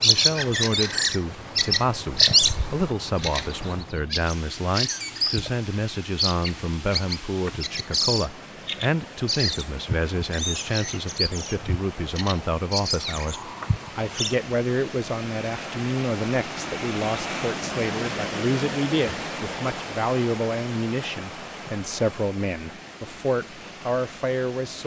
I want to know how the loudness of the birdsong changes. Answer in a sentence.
The loudness of the birdsong goes down.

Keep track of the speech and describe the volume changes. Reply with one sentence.
The loudness of the speech stays about the same.